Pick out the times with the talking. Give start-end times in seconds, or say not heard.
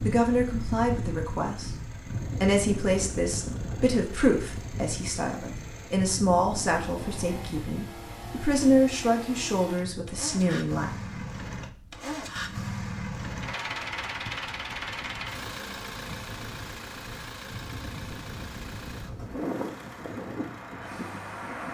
0.0-1.7, 2.4-10.9.